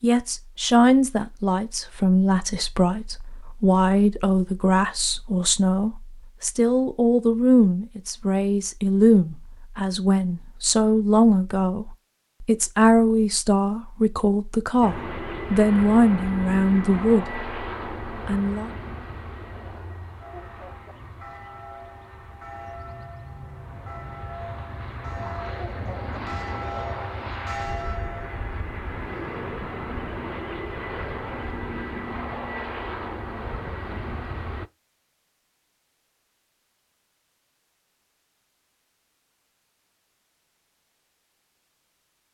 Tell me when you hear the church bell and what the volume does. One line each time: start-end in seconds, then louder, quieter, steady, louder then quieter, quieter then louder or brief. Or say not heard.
20.2-28.4 louder.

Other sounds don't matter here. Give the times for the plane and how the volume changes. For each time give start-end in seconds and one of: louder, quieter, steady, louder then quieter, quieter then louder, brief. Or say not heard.
14.8-34.7 quieter then louder.